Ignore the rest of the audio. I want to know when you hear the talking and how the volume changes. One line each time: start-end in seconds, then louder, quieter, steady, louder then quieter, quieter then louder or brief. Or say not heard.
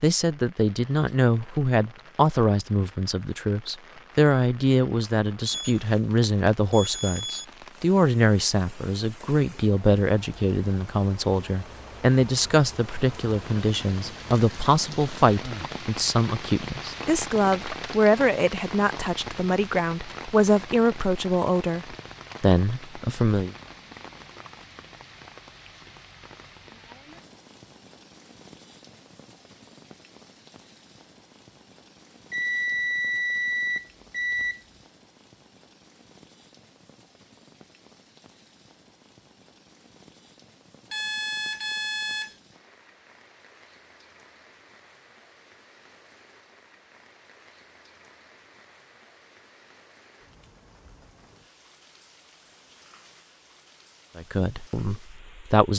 0.0-23.6 steady
54.1-55.7 brief.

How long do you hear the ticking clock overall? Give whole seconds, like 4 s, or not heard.
not heard.